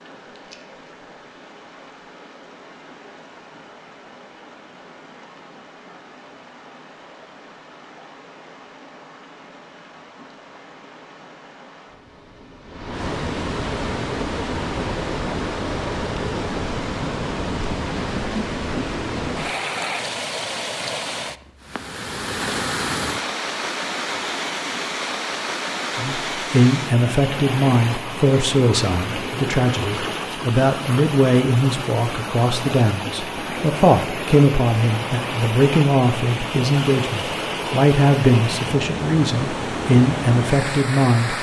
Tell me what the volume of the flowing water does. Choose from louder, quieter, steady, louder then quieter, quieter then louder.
louder.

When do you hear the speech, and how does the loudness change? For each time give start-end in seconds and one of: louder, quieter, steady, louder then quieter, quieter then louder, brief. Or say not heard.
25.9-41.3 steady.